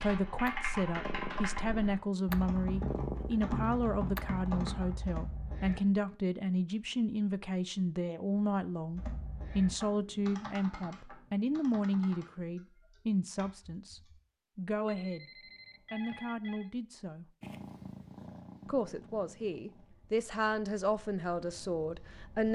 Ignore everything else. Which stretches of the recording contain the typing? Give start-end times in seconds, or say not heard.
0.0-5.8, 8.9-14.2.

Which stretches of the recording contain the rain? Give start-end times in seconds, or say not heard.
not heard.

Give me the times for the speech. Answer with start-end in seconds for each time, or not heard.
0.0-15.3, 15.9-17.3, 18.6-22.5.